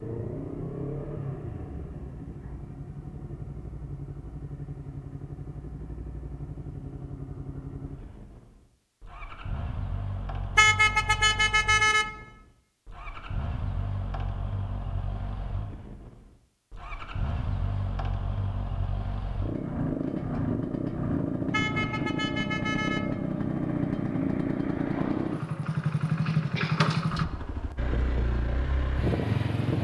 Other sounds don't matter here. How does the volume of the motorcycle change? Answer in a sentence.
The volume of the motorcycle goes up.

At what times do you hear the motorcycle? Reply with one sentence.
You can hear the motorcycle from 0.0 to 29.7 s.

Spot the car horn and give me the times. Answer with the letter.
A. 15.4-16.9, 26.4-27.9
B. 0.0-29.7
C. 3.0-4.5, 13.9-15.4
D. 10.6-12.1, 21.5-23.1
D.